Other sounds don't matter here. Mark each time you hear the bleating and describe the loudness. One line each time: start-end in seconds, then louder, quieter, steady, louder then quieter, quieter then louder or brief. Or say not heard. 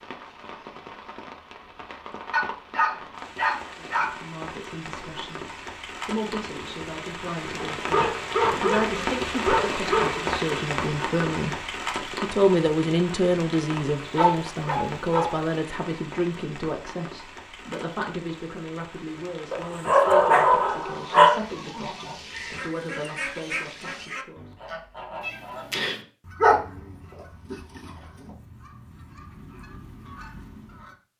not heard.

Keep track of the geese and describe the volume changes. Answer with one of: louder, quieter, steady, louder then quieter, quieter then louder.
quieter then louder.